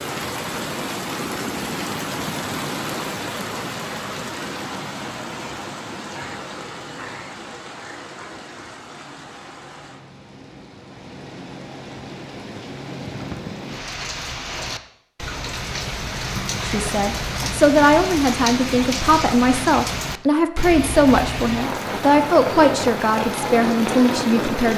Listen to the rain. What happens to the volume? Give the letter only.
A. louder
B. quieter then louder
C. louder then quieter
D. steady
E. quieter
B.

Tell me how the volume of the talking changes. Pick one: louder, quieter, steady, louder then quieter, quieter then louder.
steady.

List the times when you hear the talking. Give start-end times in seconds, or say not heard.
16.6-24.7.